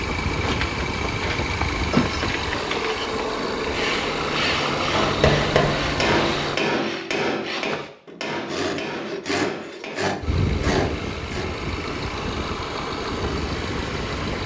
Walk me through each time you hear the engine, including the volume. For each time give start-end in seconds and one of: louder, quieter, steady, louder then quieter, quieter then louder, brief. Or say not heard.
0.0-6.6 steady
10.2-14.4 steady.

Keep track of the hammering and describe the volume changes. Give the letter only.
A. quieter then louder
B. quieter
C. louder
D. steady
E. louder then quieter
B.